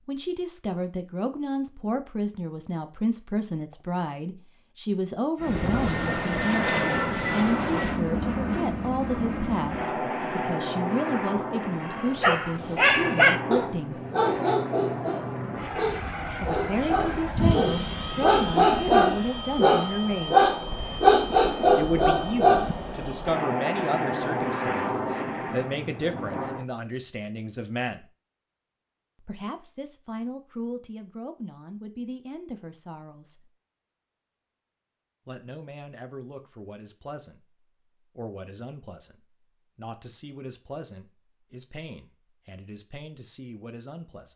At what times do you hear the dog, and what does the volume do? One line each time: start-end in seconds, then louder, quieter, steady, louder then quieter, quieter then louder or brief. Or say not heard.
11.8-22.7 quieter then louder.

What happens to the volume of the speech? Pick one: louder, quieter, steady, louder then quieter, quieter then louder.
quieter.